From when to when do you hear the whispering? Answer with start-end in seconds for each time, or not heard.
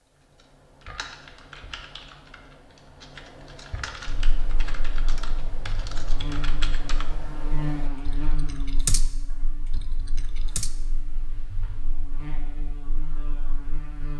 not heard.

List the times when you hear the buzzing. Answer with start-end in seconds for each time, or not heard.
4.0-14.1.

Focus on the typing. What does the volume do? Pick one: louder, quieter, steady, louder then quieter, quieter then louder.
louder.